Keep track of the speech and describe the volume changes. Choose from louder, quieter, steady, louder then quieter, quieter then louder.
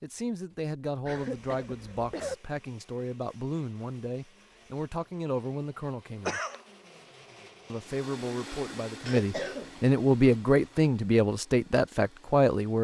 louder.